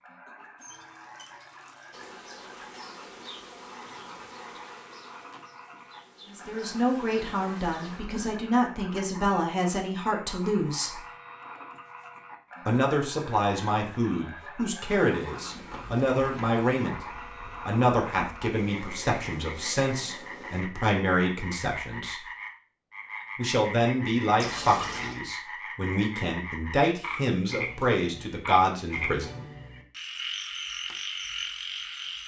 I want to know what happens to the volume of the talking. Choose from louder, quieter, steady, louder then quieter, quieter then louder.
steady.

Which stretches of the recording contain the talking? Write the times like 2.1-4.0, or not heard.
6.3-11.0, 12.7-22.2, 23.4-29.4.